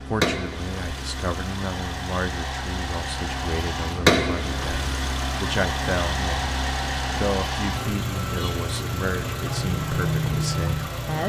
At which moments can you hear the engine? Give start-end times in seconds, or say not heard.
0.0-11.2.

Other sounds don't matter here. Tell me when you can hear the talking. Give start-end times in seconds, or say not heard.
0.0-11.2.